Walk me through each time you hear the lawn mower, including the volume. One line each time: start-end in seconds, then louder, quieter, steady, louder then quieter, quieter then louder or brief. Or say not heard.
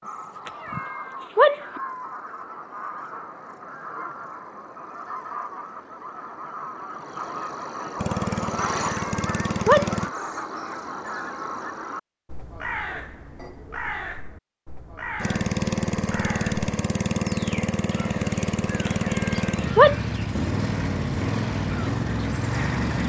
8.0-10.1 brief
15.2-23.0 steady.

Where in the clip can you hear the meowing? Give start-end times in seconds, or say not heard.
0.5-1.6, 8.8-9.9, 18.9-19.9.